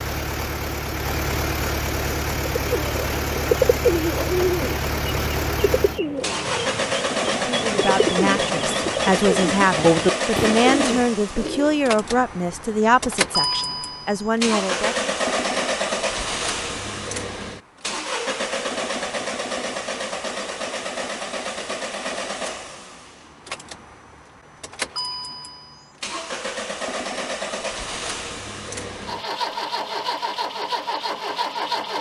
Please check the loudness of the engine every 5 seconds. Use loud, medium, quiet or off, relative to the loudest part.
loud, loud, loud, loud, medium, medium, loud.